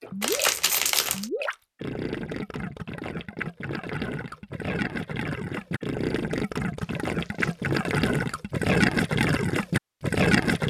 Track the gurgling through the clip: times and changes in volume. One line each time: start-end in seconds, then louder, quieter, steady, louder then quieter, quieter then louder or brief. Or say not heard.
0.0-10.6 louder.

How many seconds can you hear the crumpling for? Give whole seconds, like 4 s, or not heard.
2 s.